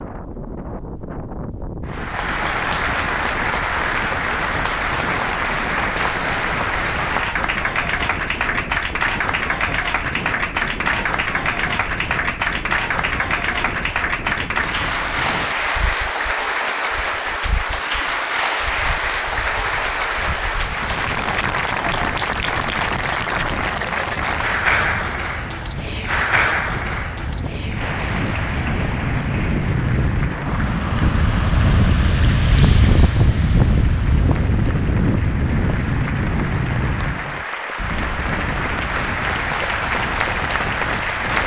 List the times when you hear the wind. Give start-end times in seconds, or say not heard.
0.0-41.4.